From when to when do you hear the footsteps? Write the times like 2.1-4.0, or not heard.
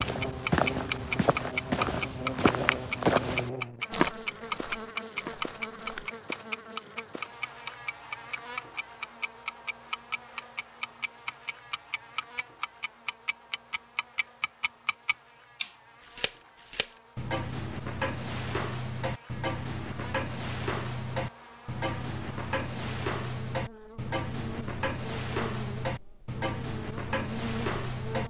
0.0-6.1.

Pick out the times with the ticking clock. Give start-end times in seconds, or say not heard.
0.0-28.2.